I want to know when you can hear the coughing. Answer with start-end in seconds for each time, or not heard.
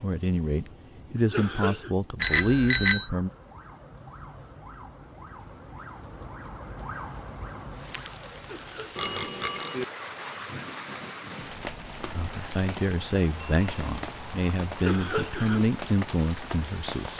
1.1-1.9, 8.4-9.1, 14.8-15.7.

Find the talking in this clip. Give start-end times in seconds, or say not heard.
0.0-3.3, 12.2-17.1.